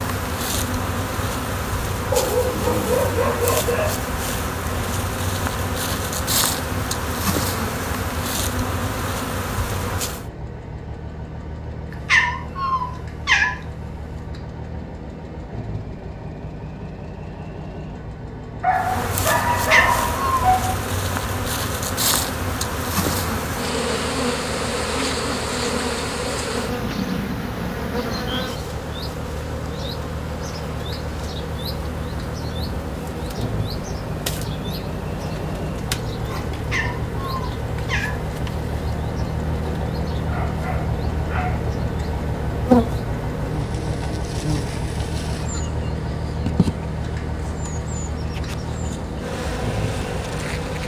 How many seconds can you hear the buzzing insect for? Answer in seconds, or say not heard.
42 s.